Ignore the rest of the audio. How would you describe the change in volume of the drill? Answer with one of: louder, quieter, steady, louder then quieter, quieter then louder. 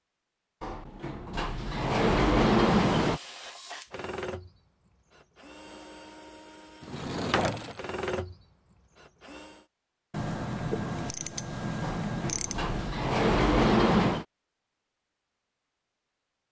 quieter then louder.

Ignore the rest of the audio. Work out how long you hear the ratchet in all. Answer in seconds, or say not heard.
3 s.